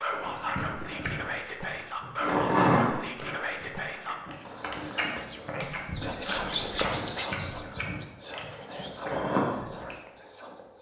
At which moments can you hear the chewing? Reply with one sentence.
You can hear the chewing from 0.1 to 9.9 s.